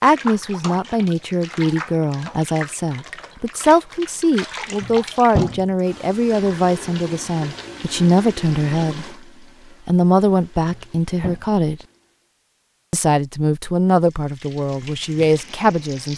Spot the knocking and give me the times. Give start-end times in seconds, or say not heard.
4.8-5.7, 10.7-11.4.